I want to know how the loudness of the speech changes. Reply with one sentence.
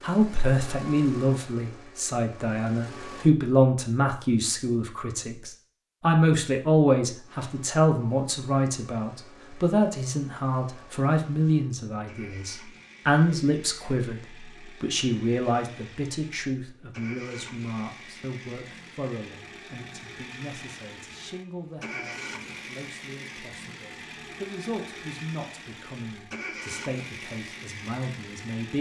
The volume of the speech goes down.